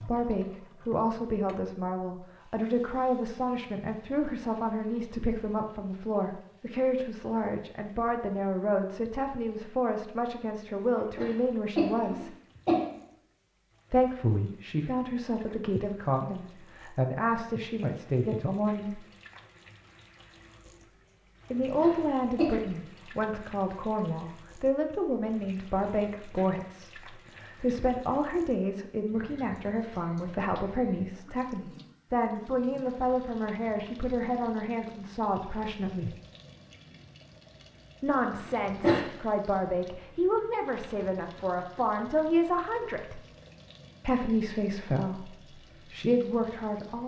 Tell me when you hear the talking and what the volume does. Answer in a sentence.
The talking can be heard from 0.1 to 12.3 s, at a steady volume; from 13.9 to 19.0 s, at a steady volume; from 21.5 to 36.1 s, at a steady volume; from 38.0 to 43.2 s, getting louder; and briefly from 44.0 to 47.0 s.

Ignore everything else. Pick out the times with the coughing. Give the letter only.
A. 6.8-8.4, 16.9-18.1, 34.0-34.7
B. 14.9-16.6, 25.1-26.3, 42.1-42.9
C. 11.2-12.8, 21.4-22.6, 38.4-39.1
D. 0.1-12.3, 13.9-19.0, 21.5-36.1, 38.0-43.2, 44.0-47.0
C.